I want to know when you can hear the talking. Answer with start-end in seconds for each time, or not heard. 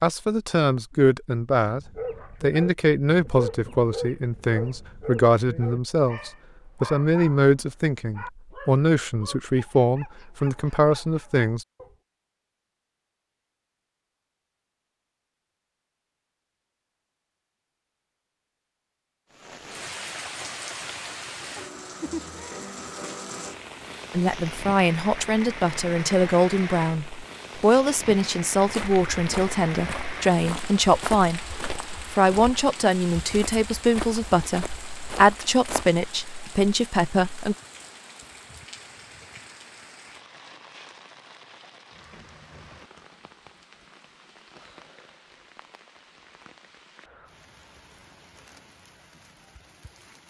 0.0-1.8, 2.4-11.7, 24.1-37.5.